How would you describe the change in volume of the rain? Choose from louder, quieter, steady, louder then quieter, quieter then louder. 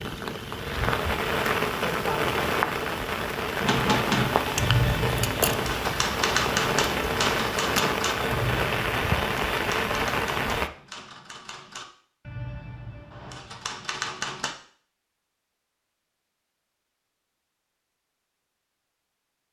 steady.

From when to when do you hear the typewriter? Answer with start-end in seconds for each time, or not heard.
3.6-14.5.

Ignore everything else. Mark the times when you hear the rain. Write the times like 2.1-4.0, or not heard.
0.0-10.7.